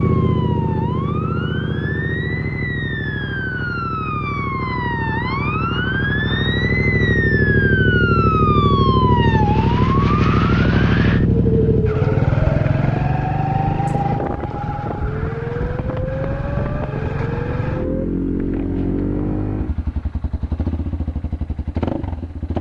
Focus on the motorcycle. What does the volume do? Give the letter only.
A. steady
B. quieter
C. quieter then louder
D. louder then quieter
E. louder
D.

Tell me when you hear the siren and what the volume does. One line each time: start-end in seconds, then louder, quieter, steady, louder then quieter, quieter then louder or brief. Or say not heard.
0.0-18.1 louder then quieter.